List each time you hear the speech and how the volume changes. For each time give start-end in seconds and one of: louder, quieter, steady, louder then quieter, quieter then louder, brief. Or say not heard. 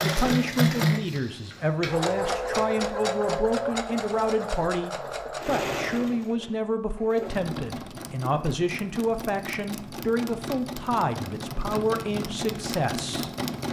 0.0-13.3 steady.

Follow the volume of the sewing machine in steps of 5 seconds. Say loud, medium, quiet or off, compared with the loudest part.
loud, medium, medium.